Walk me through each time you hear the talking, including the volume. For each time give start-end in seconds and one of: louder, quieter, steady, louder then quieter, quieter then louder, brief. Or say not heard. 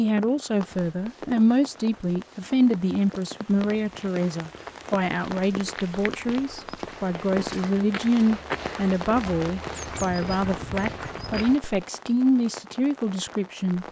0.0-13.8 steady.